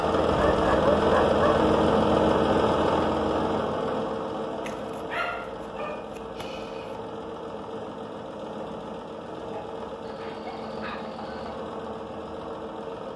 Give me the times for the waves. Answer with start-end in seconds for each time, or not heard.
not heard.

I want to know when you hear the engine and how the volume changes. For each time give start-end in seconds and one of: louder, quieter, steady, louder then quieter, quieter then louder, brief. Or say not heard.
0.0-13.1 quieter.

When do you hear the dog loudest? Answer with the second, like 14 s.
1 s.